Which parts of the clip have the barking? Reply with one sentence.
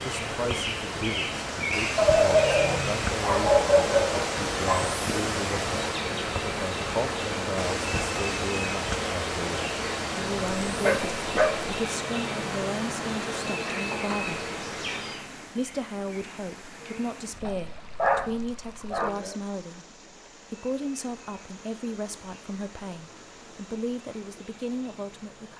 You can hear the barking from 1.9 to 5.0 s, from 10.7 to 11.7 s and from 17.4 to 19.1 s.